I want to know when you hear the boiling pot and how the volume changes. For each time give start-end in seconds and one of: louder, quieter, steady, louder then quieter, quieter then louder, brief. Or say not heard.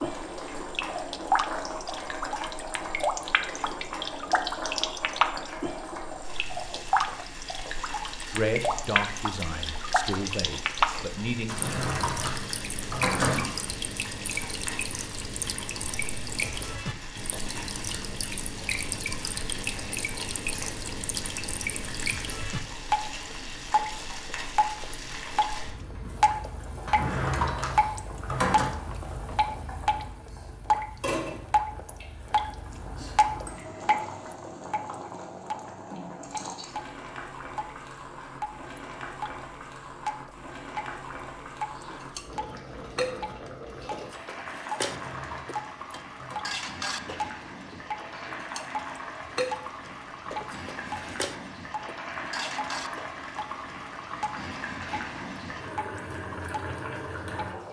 0.0-57.6 steady.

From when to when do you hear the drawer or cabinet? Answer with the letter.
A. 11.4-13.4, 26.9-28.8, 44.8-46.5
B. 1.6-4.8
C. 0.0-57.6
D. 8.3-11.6
A.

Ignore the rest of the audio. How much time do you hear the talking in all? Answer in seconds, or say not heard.
3 s.